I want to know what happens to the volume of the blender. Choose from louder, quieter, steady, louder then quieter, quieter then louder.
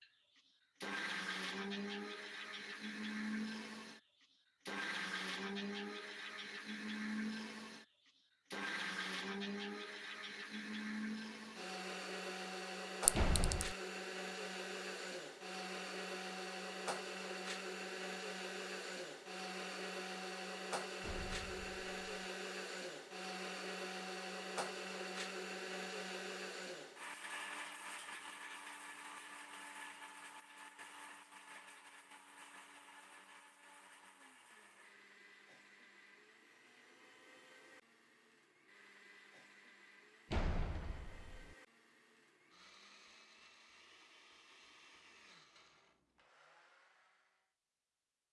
quieter.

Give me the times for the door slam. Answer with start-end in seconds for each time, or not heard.
13.2-13.7, 21.0-22.2, 40.3-41.5.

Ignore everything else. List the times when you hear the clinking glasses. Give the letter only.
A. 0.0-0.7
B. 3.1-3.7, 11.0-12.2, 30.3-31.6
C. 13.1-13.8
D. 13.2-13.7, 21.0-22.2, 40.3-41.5
C.